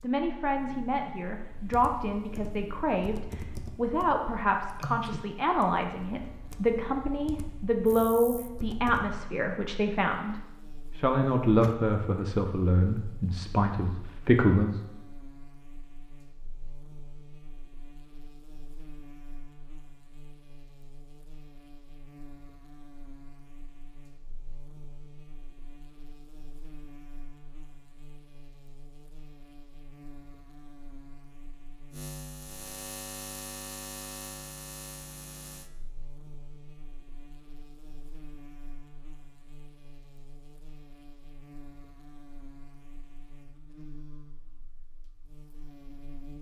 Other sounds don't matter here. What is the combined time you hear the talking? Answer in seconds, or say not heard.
14 s.